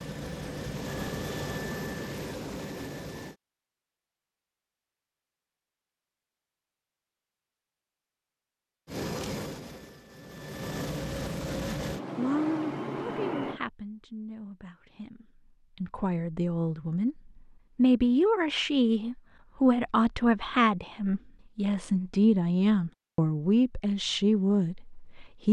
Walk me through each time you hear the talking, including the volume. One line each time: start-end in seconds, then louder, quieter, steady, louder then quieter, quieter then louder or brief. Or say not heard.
12.2-25.4 louder.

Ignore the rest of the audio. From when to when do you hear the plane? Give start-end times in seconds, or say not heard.
0.0-3.4, 8.8-13.6.